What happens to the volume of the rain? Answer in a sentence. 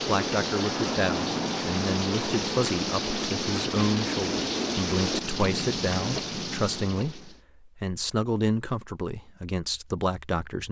The loudness of the rain stays about the same.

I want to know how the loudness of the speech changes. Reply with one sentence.
The volume of the speech stays about the same.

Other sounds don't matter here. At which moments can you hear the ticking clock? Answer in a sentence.
You can't hear the ticking clock here.